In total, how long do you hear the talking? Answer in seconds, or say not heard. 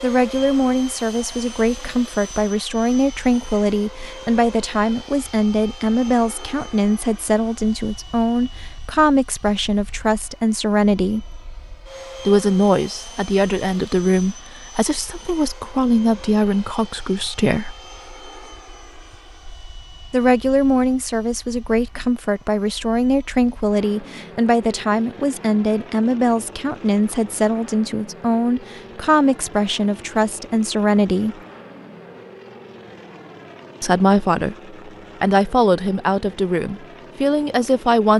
32 s.